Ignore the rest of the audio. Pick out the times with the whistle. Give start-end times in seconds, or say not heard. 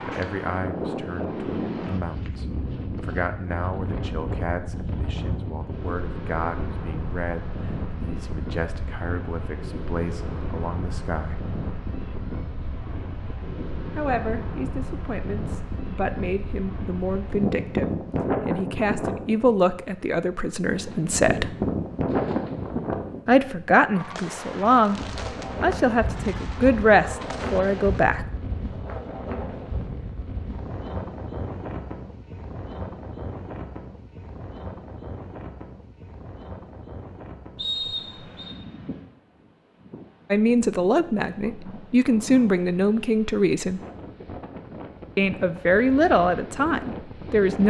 37.5-38.5.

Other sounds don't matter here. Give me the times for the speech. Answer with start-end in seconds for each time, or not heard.
0.0-11.4, 13.9-17.9, 18.4-21.5, 23.2-28.2, 40.3-43.8, 45.1-47.6.